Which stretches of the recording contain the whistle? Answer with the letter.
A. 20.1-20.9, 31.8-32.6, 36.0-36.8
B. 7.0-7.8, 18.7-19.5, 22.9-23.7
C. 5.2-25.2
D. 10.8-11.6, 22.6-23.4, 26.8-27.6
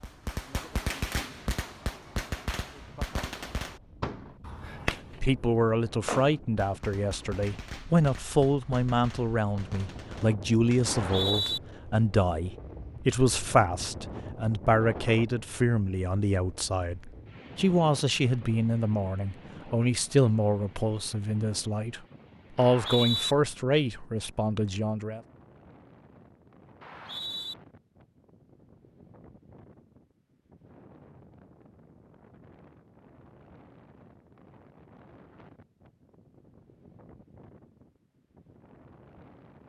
D.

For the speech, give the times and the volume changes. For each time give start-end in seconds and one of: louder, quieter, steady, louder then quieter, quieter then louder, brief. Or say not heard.
5.2-25.2 steady.